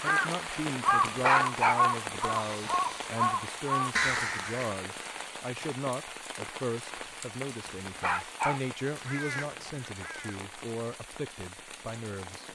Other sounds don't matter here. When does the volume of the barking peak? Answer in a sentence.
The loudest moment of the barking is at 1 second.